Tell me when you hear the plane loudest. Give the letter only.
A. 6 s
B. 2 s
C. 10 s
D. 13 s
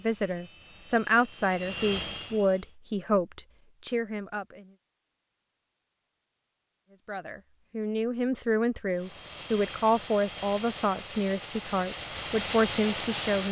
D.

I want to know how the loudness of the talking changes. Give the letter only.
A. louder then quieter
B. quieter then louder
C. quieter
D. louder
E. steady
E.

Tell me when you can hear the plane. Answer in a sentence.
The plane can be heard from 0.0 to 2.8 s and from 8.9 to 13.4 s.